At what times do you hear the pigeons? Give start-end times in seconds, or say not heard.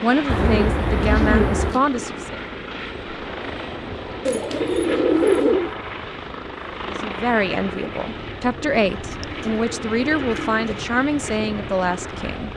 0.2-1.8, 4.2-5.8, 8.9-10.8.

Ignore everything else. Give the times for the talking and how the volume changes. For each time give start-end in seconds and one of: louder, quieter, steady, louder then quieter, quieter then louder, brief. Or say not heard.
0.0-2.4 brief
6.8-12.5 steady.